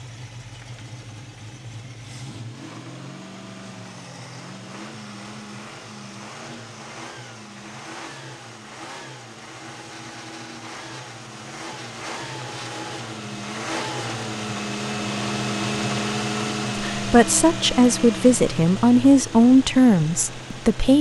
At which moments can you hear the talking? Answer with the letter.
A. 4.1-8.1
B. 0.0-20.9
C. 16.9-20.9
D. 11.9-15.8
C.